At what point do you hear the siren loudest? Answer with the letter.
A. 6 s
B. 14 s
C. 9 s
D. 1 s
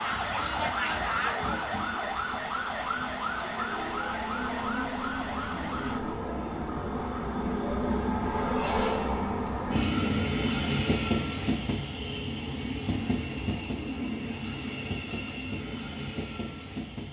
D.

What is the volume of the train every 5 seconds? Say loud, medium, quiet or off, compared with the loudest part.
medium, loud, loud, medium.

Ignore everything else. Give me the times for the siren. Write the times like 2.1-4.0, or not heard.
0.0-6.2.